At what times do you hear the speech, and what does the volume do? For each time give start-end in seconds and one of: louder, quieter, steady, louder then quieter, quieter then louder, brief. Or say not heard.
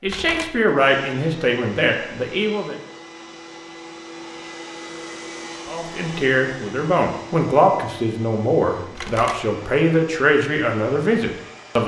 0.0-2.8 brief
5.7-11.8 steady.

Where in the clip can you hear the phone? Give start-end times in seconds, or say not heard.
0.1-0.6, 8.9-9.4.